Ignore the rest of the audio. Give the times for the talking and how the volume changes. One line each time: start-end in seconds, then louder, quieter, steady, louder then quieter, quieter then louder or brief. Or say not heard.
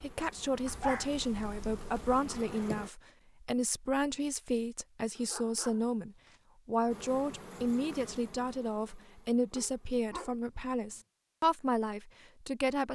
0.0-12.8 steady.